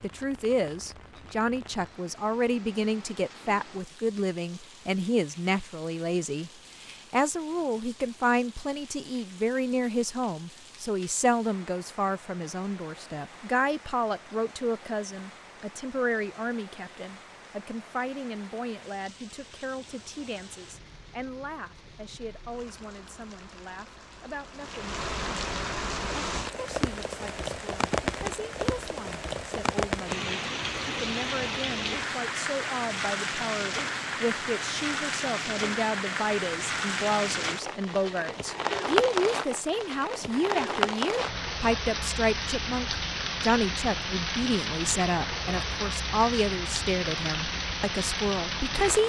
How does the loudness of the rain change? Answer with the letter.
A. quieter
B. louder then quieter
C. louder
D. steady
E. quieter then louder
C.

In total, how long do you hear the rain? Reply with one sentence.
The rain can be heard for 49 seconds in total.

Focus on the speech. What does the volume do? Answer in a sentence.
The volume of the speech goes down, then up.